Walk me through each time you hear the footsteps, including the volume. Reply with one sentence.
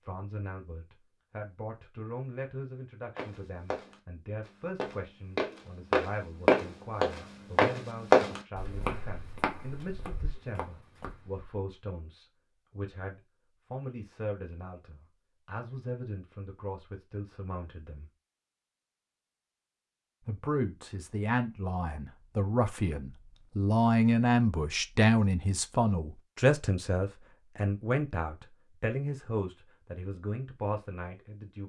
The footsteps can be heard from 3.1 to 11.4 s, getting louder then quieter.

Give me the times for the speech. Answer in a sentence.
The speech can be heard from 0.0 to 18.1 s and from 20.2 to 31.6 s.